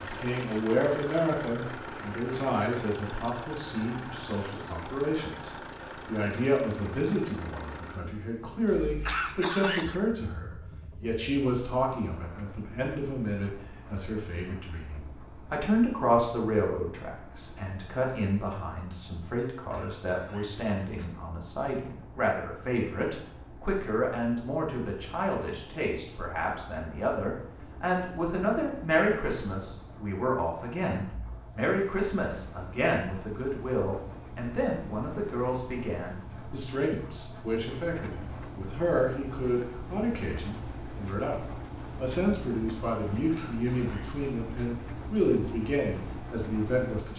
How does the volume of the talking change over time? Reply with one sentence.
The loudness of the talking stays about the same.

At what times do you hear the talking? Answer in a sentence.
The talking can be heard from 0.0 to 47.1 s.